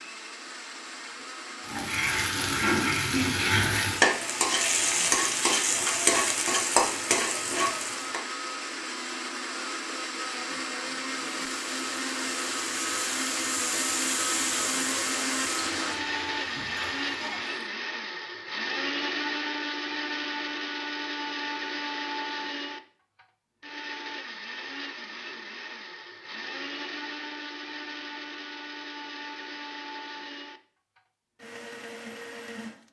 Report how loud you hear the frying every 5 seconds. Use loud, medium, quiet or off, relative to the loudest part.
loud, loud, medium, quiet, off, off, off.